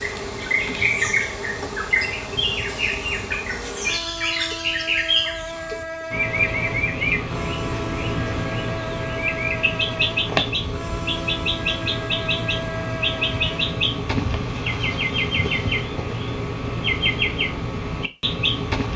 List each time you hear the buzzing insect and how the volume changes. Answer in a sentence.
The buzzing insect can be heard from 0.0 to 15.8 s, at a steady volume.